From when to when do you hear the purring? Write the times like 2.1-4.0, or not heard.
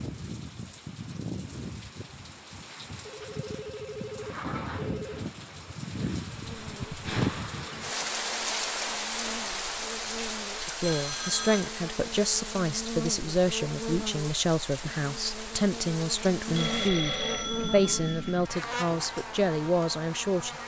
not heard.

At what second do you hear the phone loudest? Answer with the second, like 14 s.
17 s.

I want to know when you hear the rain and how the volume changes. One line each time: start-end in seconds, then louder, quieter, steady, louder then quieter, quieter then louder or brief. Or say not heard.
0.0-16.9 louder then quieter.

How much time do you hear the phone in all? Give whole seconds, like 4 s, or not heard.
5 s.